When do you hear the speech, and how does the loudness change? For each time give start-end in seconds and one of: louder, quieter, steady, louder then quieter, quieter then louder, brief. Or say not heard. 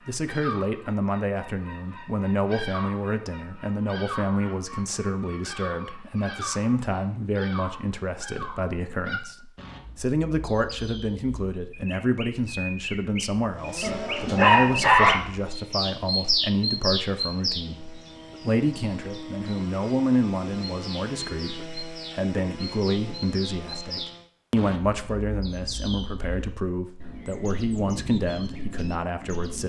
0.1-29.6 steady.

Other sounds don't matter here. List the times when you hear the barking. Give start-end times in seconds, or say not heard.
13.8-15.2.